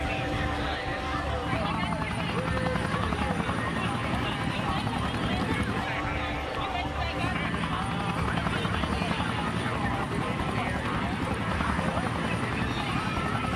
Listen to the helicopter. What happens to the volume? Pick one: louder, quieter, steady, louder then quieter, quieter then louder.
steady.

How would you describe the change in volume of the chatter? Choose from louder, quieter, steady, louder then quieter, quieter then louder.
steady.